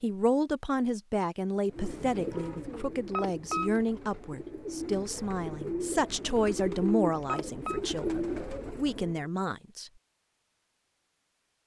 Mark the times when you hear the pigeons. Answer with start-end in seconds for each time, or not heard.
1.7-9.2.